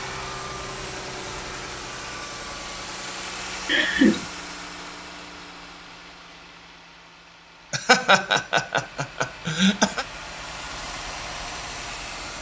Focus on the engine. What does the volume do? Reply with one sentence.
The loudness of the engine goes down, then up.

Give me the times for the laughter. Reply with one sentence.
The laughter can be heard from 3.6 to 4.2 s and from 7.7 to 10.1 s.